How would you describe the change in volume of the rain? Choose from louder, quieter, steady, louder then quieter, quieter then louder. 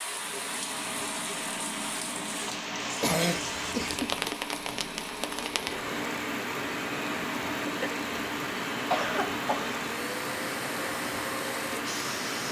steady.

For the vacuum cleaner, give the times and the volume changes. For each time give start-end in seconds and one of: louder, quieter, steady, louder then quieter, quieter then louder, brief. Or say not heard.
0.0-12.4 steady.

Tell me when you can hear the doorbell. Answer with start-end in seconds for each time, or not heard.
not heard.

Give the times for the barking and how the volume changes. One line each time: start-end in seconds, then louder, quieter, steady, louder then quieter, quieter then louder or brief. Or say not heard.
not heard.